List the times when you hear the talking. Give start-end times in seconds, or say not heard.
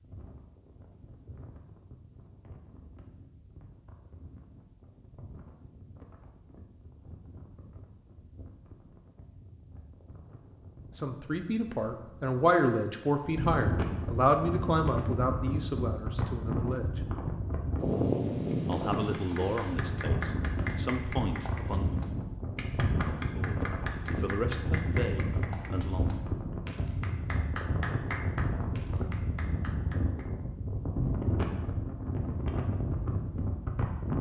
10.9-17.0, 18.6-21.9, 23.4-26.1.